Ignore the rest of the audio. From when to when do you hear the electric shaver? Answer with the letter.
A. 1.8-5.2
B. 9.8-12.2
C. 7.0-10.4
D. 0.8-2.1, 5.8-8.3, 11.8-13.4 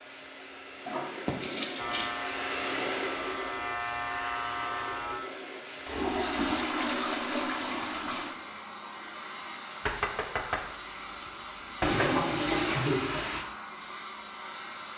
A.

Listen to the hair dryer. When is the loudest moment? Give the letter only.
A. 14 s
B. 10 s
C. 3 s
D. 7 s
C.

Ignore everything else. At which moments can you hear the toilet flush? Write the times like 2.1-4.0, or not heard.
0.8-2.1, 5.8-8.3, 11.8-13.4.